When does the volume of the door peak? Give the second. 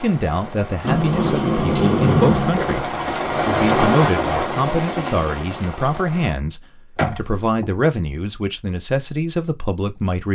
2 s.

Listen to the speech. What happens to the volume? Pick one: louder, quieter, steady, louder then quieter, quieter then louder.
steady.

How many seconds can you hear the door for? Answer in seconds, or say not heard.
3 s.